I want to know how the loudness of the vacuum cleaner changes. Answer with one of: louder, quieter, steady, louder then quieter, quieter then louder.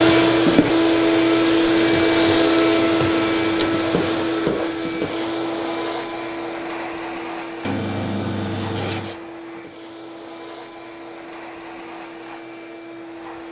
quieter.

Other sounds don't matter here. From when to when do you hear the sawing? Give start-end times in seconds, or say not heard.
2.7-4.2, 7.6-9.2.